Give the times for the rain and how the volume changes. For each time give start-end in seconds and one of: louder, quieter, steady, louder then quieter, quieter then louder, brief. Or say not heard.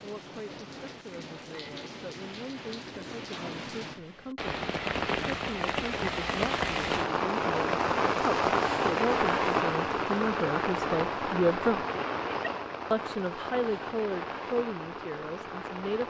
0.0-16.0 louder then quieter.